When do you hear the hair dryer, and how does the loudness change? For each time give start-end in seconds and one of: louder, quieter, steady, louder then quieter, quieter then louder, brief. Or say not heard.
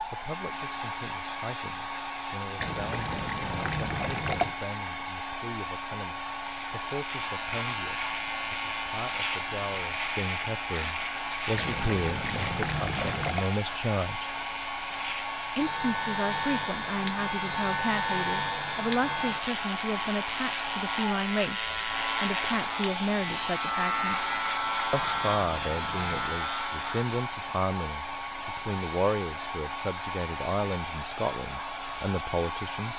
0.0-32.9 steady.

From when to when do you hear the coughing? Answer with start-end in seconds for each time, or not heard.
not heard.